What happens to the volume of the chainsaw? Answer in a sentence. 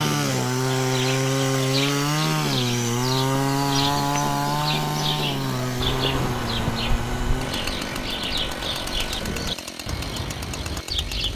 The volume of the chainsaw goes down.